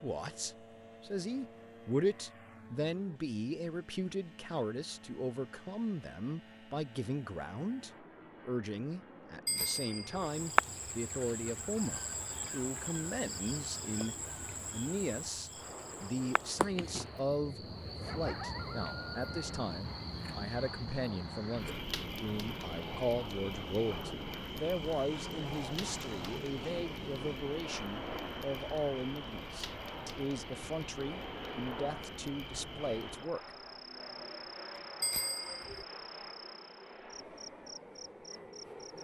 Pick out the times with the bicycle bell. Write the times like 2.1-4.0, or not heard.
9.4-10.3, 35.0-35.9.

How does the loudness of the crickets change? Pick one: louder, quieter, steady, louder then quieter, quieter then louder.
quieter.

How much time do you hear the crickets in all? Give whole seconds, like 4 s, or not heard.
29 s.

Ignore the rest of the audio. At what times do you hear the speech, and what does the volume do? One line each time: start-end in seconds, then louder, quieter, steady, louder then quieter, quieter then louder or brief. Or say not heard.
0.0-33.5 steady.